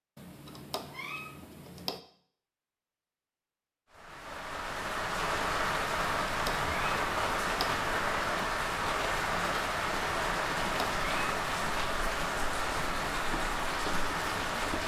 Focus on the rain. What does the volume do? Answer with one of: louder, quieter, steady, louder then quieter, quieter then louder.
steady.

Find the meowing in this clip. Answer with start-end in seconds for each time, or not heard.
0.1-2.0, 5.9-8.0, 10.2-11.4.